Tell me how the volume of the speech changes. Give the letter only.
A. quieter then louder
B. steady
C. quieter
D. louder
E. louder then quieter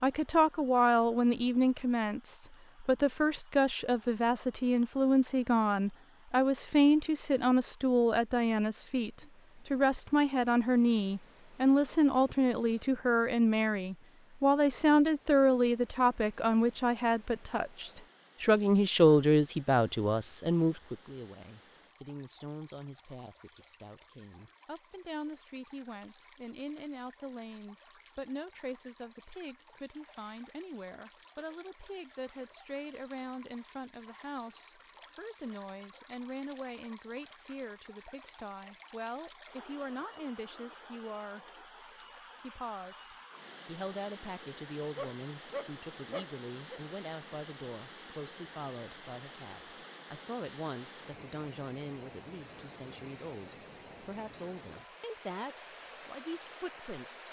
C.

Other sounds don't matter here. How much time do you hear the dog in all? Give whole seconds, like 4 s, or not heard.
2 s.